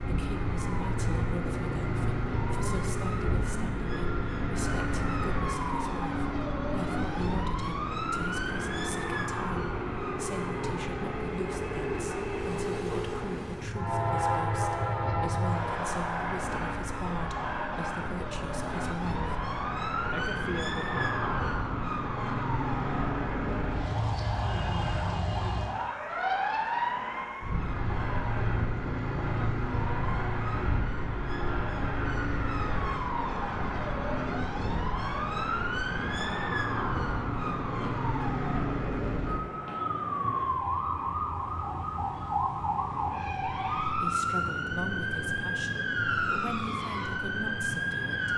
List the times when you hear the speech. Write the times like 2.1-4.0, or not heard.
0.0-19.3, 20.1-20.9, 44.0-48.3.